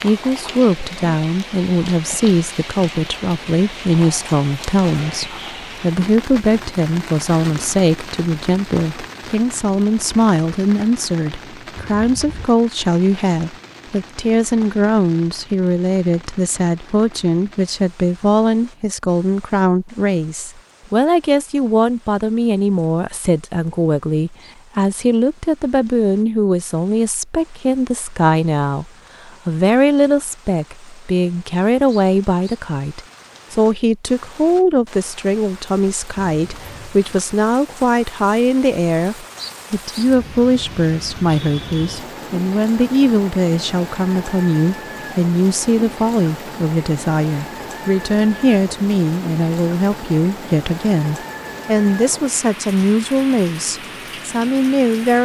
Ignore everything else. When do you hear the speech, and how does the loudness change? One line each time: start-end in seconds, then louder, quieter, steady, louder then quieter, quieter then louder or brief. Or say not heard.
0.0-55.2 steady.